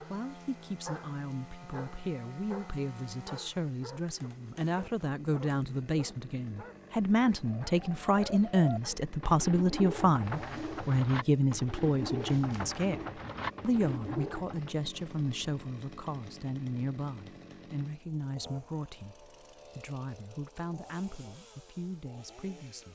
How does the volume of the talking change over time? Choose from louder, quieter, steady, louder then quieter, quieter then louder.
louder then quieter.